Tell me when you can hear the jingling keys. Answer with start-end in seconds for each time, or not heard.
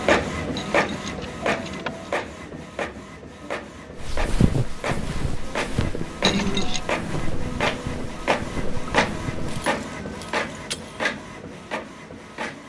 0.6-2.1, 6.2-6.8, 9.4-11.0.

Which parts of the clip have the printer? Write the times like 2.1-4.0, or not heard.
0.0-12.6.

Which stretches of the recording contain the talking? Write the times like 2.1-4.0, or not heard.
not heard.